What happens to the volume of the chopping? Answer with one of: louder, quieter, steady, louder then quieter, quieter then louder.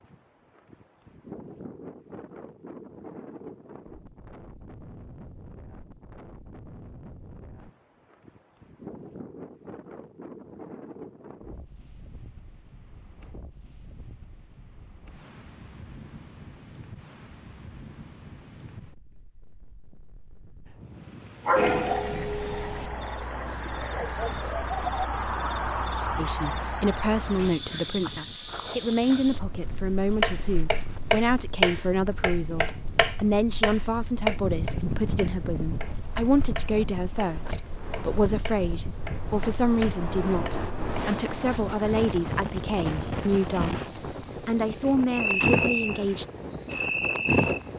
quieter.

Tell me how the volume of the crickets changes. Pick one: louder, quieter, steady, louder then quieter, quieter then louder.
quieter then louder.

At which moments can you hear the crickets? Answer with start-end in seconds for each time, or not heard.
21.2-47.7.